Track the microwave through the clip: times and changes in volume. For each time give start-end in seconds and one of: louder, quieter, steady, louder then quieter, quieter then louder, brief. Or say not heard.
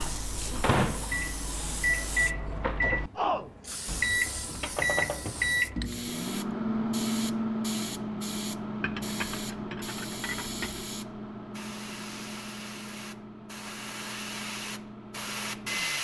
0.0-16.0 quieter.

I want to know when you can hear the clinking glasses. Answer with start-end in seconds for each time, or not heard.
8.8-10.8.